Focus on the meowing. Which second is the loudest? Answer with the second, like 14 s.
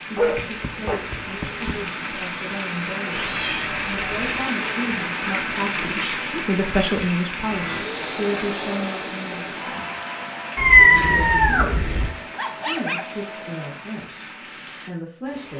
11 s.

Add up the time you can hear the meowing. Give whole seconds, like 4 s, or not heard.
3 s.